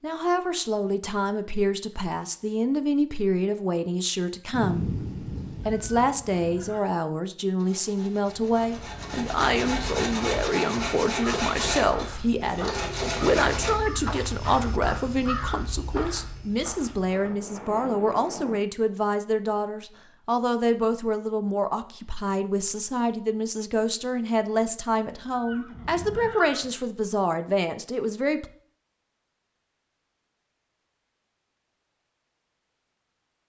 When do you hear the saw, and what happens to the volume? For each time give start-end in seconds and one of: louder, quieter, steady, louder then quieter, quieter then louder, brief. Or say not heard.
7.5-13.7 louder.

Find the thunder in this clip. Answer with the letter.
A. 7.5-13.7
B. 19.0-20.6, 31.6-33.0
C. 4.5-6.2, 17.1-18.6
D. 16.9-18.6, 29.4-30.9
C.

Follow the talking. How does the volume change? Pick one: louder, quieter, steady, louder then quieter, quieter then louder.
steady.